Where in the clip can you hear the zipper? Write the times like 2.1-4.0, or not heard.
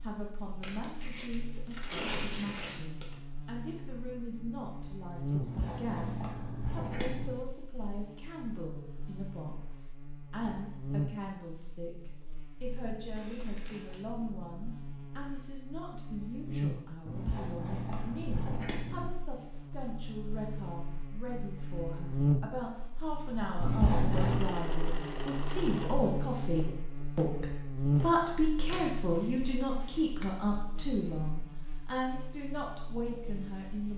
not heard.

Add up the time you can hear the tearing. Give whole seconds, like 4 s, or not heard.
6 s.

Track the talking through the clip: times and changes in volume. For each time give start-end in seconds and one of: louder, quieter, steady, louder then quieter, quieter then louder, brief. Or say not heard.
0.0-33.9 louder.